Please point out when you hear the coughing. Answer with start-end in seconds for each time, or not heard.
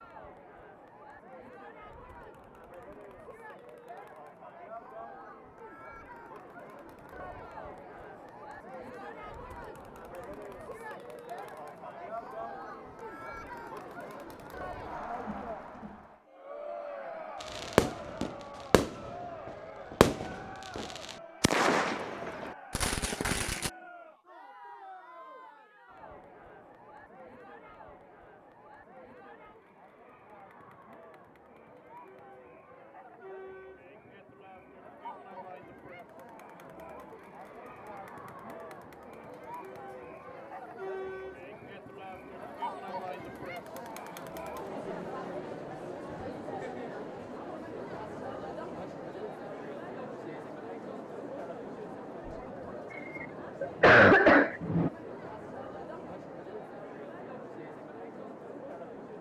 53.0-54.9.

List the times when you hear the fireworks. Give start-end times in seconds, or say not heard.
17.4-23.7.